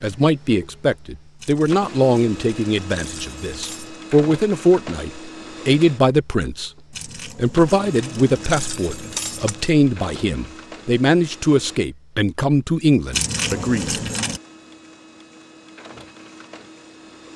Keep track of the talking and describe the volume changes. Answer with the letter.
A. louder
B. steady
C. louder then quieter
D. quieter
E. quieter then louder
B.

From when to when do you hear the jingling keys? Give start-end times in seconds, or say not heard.
1.4-4.0, 7.0-9.7, 13.1-14.4.